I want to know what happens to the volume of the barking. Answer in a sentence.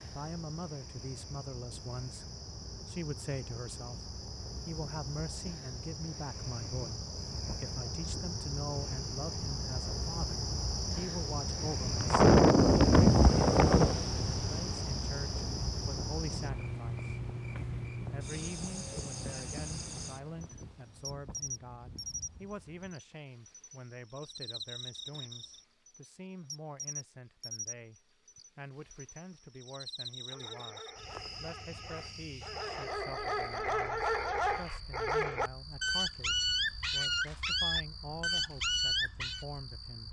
The loudness of the barking goes up.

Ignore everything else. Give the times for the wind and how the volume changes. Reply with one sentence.
You can hear the wind from 0.1 to 22.9 s, getting louder then quieter.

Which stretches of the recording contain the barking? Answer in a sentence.
You can hear the barking from 30.1 to 39.5 s.